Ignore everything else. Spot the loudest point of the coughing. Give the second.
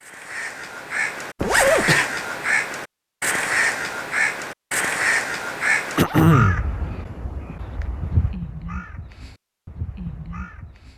6 s.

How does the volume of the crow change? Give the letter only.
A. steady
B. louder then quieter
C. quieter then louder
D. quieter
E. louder
D.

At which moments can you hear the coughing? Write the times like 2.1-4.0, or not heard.
1.6-2.1, 6.0-6.7.